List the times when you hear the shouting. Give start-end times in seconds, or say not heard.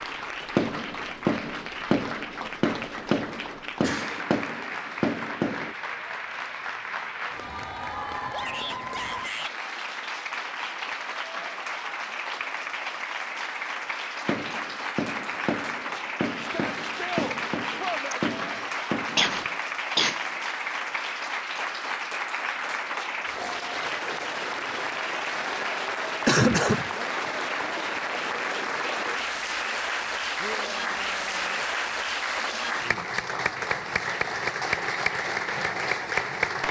8.3-9.6, 16.4-18.3, 30.4-31.6.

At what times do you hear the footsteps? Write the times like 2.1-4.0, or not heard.
not heard.